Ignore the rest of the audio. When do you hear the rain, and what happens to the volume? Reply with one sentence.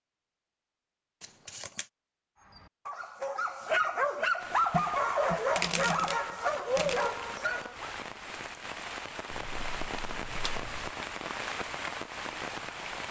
You can hear the rain from 4.3 to 13.0 s, getting louder.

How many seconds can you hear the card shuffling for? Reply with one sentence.
You can hear the card shuffling for 5 seconds altogether.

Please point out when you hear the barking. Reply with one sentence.
You can hear the barking from 2.4 to 8.0 s.